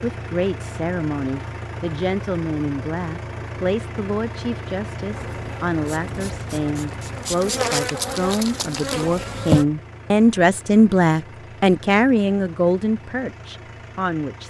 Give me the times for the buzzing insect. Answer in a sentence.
You can hear the buzzing insect from 5.1 to 9.7 s.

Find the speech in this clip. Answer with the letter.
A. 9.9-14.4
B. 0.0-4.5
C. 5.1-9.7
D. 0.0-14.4
D.